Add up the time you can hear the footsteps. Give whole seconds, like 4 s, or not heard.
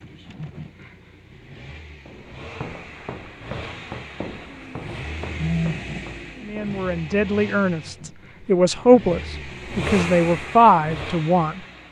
5 s.